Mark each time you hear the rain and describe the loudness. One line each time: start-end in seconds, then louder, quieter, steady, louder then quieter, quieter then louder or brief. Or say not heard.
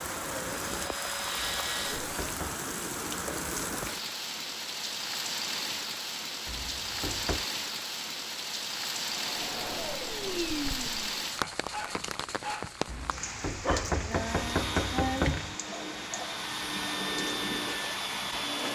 0.0-18.7 quieter.